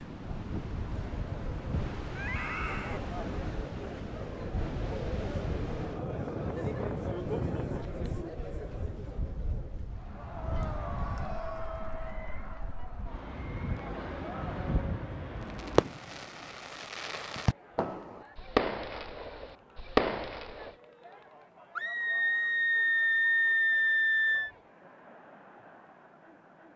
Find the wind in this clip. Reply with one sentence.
The wind can be heard from 0.0 to 15.8 s.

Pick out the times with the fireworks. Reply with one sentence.
You can hear the fireworks from 15.6 to 20.7 s.